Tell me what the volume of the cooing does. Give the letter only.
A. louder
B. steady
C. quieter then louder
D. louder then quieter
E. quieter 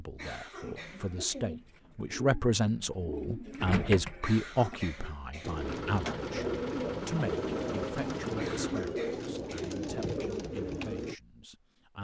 A.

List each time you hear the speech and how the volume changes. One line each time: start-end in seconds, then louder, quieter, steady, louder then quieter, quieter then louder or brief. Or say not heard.
0.0-11.9 quieter.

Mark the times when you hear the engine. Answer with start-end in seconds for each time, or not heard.
5.5-8.8.